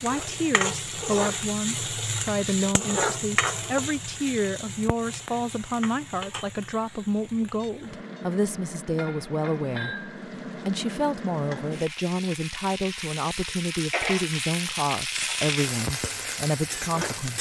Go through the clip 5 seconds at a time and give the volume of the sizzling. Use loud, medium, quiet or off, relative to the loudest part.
loud, medium, loud, loud.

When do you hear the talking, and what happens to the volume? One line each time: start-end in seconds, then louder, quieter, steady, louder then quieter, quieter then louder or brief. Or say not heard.
0.0-17.3 steady.